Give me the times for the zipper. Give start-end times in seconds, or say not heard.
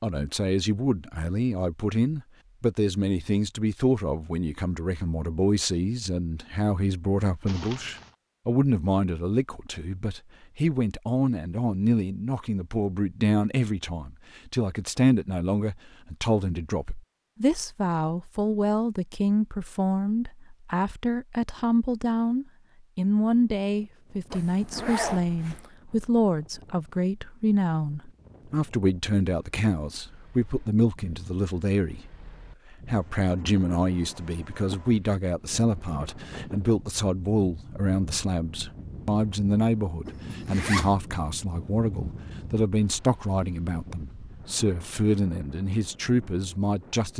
7.5-8.1, 24.3-25.7, 40.0-41.0.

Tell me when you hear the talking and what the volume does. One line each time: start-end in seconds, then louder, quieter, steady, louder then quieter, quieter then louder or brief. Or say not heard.
0.0-47.1 steady.